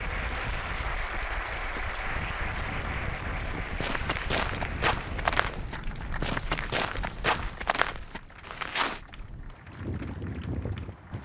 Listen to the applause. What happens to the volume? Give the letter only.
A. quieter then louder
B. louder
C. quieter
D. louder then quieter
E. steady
C.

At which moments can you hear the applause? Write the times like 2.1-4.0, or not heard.
0.0-11.1.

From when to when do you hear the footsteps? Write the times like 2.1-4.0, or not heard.
3.5-9.0.